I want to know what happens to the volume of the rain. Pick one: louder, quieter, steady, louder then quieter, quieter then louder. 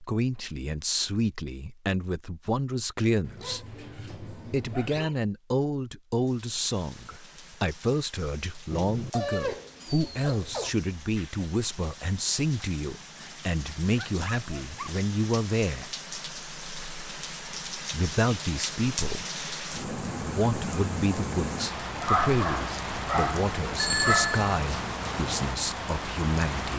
louder.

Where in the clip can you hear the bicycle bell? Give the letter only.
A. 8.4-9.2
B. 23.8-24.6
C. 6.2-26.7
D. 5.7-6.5
B.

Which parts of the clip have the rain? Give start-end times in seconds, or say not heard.
6.2-26.7.